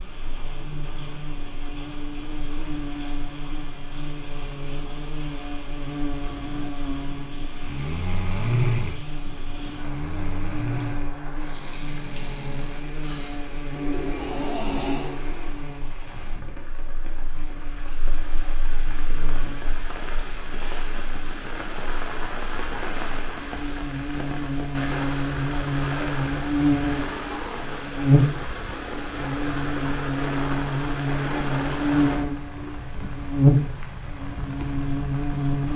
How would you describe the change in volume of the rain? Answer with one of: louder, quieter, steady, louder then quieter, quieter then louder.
louder.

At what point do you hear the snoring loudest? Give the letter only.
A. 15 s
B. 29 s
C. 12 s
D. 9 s
D.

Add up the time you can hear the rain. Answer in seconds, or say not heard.
36 s.